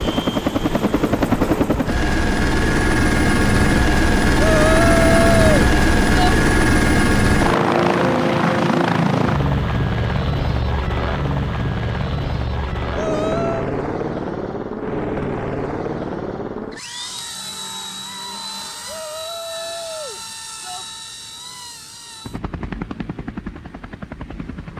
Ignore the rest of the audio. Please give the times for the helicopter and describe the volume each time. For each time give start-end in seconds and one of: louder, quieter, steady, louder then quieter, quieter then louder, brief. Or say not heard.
0.0-24.7 quieter.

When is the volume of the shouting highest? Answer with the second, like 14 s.
5 s.